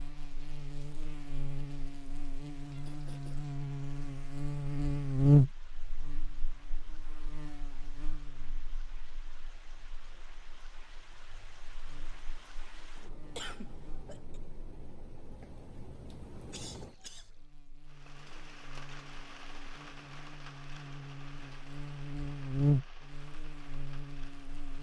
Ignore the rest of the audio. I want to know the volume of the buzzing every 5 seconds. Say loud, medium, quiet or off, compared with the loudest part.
medium, loud, quiet, quiet, medium.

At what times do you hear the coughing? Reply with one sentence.
The coughing can be heard from 2.9 to 3.5 s, from 13.3 to 14.4 s and from 16.5 to 17.3 s.